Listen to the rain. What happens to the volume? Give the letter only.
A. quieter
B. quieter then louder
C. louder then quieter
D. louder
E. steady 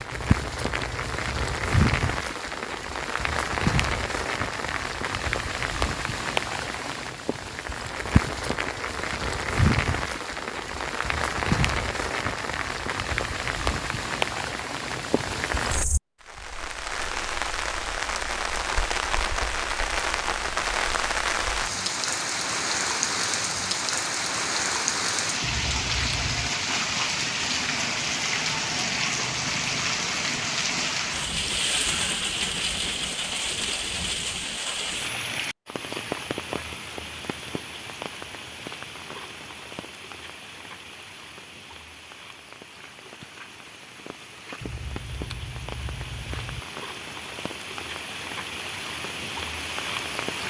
A.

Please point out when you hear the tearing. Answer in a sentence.
The tearing can't be heard in this clip.